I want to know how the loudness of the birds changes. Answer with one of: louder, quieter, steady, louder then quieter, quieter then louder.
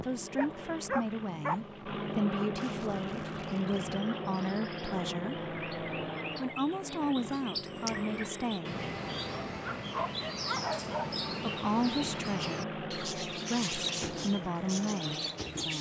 louder.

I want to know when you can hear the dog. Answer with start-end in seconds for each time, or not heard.
0.3-1.6, 9.3-11.2.